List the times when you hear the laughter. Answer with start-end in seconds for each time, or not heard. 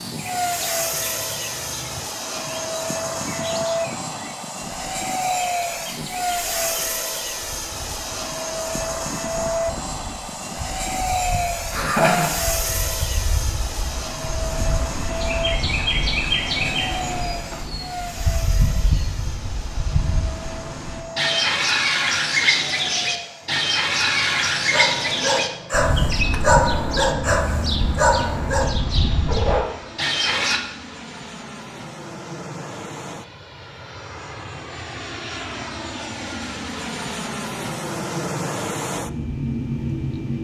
11.7-12.3.